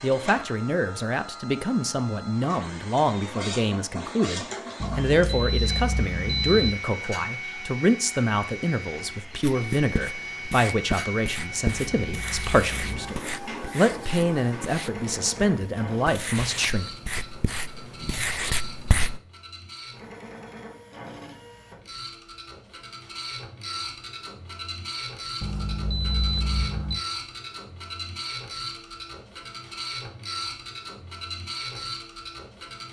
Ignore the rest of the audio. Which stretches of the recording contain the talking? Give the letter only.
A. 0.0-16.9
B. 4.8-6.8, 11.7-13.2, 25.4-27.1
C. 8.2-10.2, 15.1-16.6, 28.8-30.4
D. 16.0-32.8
A.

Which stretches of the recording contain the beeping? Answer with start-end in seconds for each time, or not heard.
4.8-6.8, 11.7-13.2, 25.4-27.1.